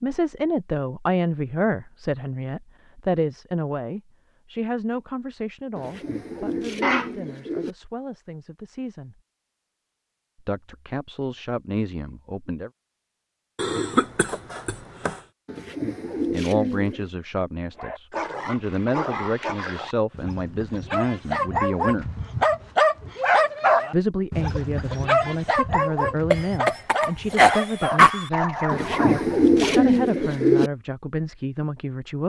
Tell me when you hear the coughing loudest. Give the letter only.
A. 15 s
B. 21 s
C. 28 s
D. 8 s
C.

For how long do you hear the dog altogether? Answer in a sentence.
The dog can be heard for 12 seconds in total.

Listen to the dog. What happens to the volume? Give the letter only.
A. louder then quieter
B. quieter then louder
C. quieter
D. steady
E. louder
A.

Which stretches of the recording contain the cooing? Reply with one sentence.
The cooing can be heard from 5.8 to 7.8 s, from 15.4 to 17.1 s and from 28.7 to 30.7 s.